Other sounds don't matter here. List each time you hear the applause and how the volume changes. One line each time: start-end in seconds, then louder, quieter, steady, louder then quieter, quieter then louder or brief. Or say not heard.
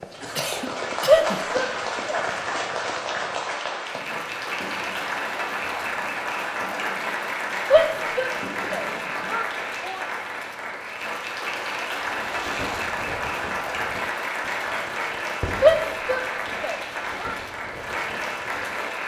0.0-19.0 steady.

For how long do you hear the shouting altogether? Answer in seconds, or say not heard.
5 s.